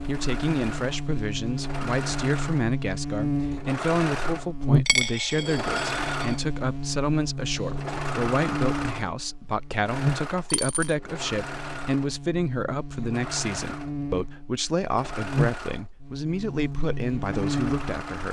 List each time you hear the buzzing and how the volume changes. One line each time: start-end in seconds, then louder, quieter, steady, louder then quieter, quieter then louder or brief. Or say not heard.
0.0-18.2 quieter then louder.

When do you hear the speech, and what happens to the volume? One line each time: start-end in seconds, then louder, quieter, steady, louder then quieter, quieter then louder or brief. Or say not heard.
0.1-18.2 steady.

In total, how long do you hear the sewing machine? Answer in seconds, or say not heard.
16 s.